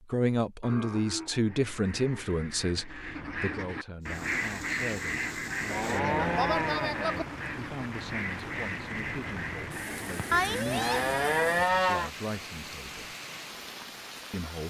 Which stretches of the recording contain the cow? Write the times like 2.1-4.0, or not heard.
0.6-2.2, 5.7-7.2, 10.3-12.1.